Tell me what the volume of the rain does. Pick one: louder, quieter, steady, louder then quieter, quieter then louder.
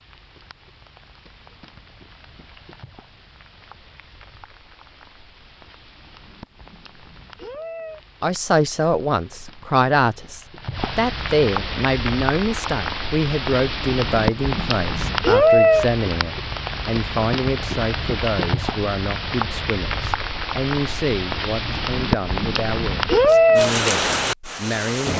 louder.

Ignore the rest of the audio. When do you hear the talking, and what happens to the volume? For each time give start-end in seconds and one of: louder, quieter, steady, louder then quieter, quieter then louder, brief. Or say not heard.
8.2-25.1 quieter.